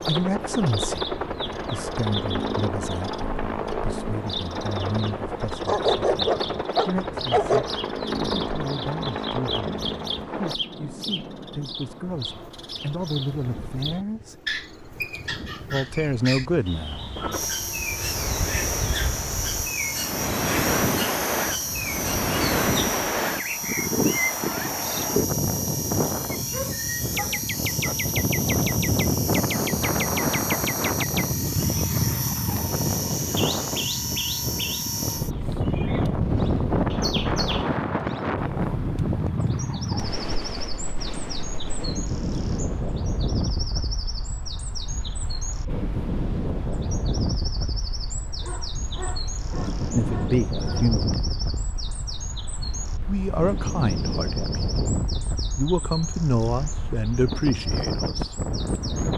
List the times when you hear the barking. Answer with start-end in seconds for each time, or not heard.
5.6-7.7, 26.5-27.9, 48.4-51.0.